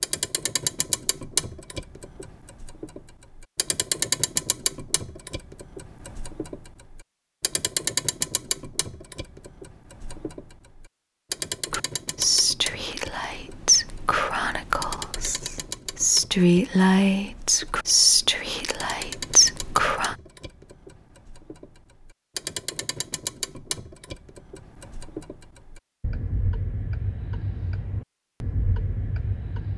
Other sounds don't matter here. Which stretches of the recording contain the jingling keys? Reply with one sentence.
You can't hear the jingling keys here.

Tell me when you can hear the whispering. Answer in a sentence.
You can hear the whispering from 11.7 to 20.1 s.